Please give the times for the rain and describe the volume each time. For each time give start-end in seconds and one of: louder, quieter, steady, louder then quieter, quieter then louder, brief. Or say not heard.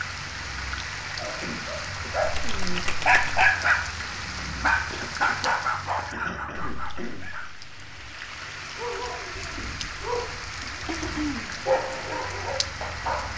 0.0-13.3 quieter then louder.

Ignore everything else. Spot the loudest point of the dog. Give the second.
4 s.